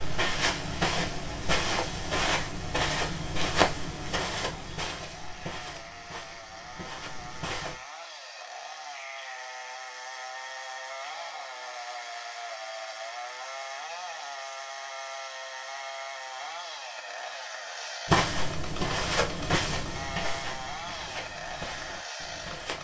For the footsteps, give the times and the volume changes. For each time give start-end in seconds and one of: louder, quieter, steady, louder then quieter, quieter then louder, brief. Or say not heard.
0.0-7.8 quieter
18.1-22.7 quieter.